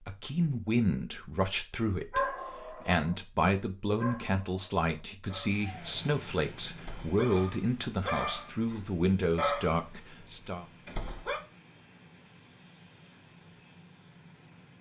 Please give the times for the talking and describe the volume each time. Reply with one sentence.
The talking can be heard from 0.0 to 10.7 s, at a steady volume.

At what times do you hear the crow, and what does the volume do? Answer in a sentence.
You can't hear the crow here.